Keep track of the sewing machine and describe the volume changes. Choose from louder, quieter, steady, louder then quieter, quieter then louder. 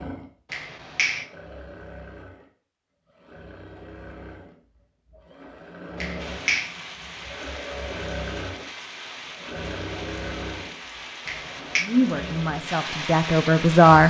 louder.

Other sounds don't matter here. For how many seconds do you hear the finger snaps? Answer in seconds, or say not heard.
2 s.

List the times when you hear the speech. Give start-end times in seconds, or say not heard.
11.8-14.0.